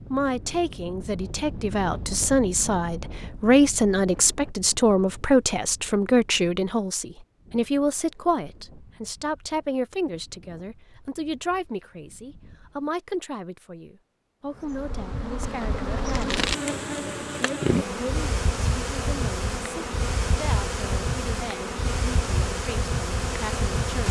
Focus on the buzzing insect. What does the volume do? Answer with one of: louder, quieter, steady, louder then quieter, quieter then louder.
steady.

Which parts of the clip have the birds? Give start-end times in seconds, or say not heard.
not heard.